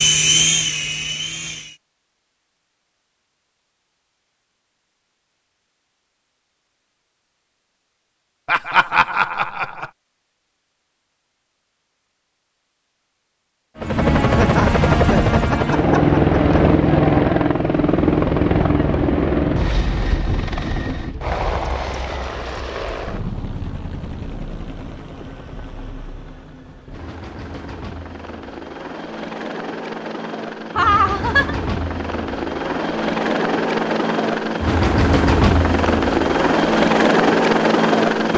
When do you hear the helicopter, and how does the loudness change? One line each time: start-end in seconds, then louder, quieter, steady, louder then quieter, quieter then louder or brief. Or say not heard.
0.0-1.8 brief
13.8-38.3 quieter then louder.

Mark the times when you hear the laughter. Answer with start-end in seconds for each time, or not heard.
8.4-9.9, 14.2-16.6, 30.8-31.6.